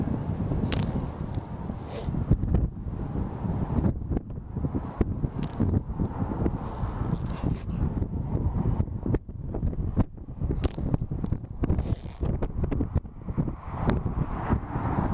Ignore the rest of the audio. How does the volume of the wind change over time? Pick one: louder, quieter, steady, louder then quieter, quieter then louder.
steady.